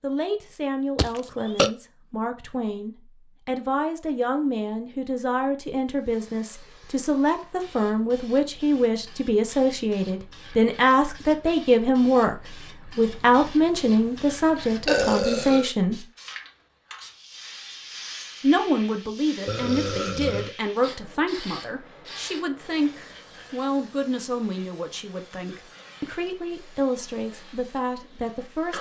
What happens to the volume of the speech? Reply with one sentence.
The loudness of the speech goes up, then down.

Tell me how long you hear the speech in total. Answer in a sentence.
You can hear the speech for 26 seconds altogether.